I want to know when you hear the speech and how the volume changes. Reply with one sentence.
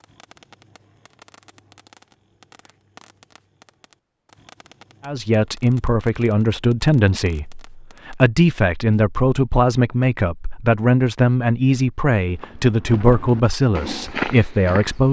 You can hear the speech from 5.0 to 15.0 s, at a steady volume.